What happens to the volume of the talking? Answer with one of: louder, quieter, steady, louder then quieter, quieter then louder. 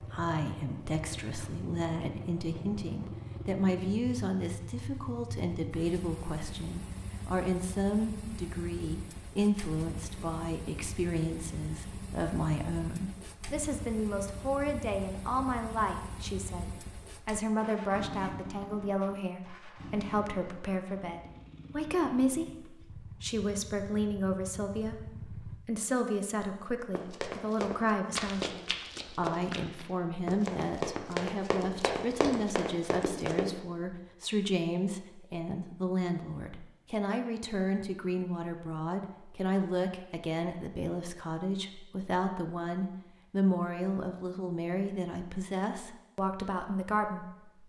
steady.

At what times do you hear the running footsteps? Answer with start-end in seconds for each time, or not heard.
26.9-33.5.